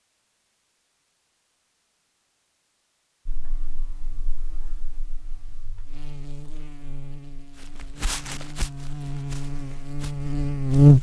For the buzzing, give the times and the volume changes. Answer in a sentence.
You can hear the buzzing from 3.2 to 10.9 s, getting louder.